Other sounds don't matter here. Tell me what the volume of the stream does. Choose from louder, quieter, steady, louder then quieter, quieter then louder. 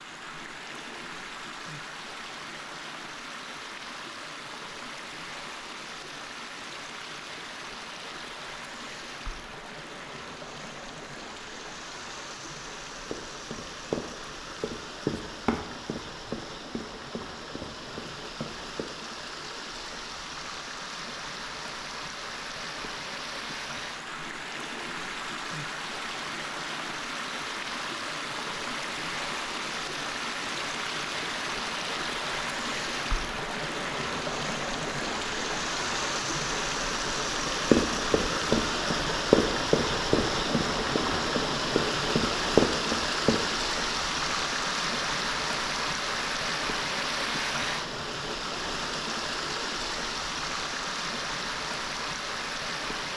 louder.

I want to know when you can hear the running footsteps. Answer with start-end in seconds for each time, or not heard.
13.1-18.9, 37.6-43.4.